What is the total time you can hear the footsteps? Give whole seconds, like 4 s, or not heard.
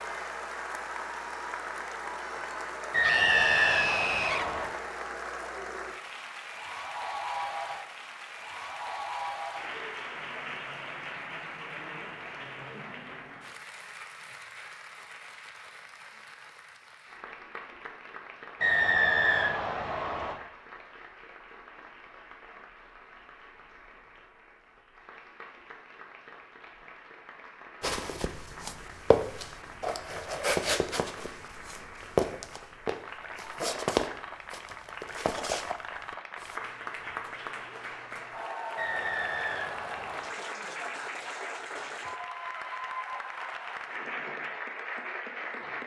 9 s.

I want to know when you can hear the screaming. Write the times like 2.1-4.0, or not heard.
3.0-4.5.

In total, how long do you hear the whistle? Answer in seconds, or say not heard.
5 s.